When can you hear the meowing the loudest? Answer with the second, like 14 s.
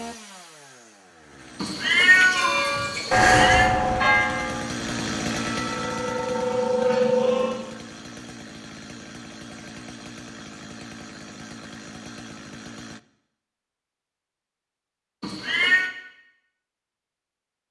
2 s.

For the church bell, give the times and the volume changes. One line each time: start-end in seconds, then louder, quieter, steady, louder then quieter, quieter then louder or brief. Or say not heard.
2.4-7.6 quieter then louder.